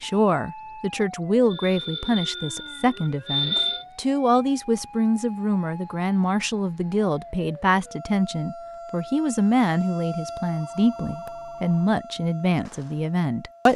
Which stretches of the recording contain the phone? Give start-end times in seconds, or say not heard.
1.5-3.9, 10.1-11.9.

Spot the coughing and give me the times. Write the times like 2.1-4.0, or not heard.
not heard.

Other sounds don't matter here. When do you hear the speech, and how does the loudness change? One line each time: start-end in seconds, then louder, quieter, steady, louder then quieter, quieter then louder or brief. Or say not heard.
0.0-13.7 steady.